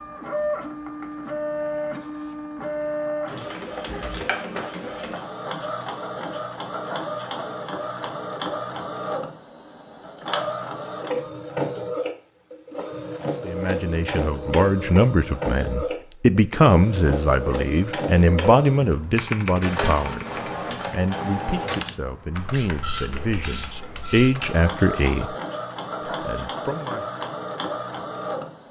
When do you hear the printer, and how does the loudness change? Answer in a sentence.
The printer can be heard from 0.0 to 28.6 s, at a steady volume.